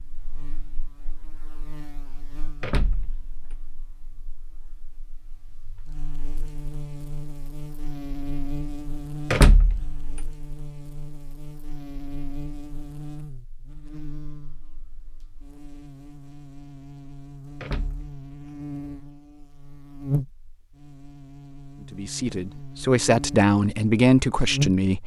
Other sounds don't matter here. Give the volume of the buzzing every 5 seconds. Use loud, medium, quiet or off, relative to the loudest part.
quiet, medium, medium, medium, loud.